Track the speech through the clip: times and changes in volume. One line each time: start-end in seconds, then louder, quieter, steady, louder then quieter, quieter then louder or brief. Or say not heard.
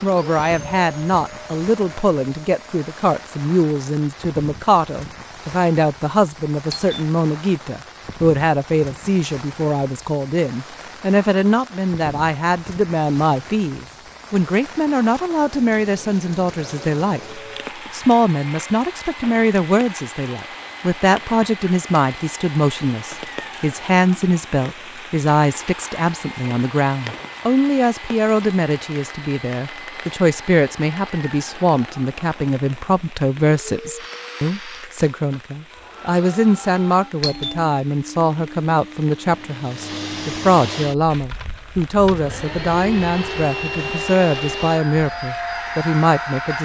0.0-46.6 steady.